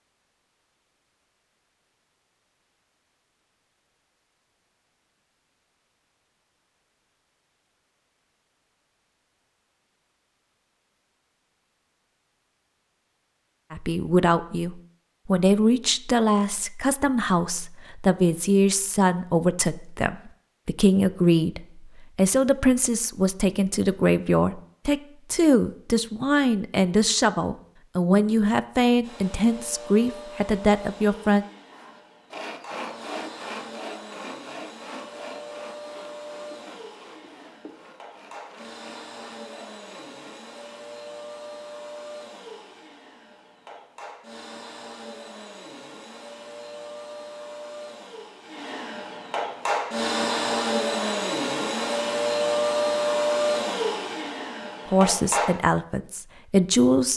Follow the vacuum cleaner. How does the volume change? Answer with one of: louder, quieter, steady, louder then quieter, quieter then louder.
louder.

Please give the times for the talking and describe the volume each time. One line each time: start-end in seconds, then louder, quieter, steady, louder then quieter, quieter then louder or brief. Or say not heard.
13.7-31.4 steady
54.9-57.1 brief.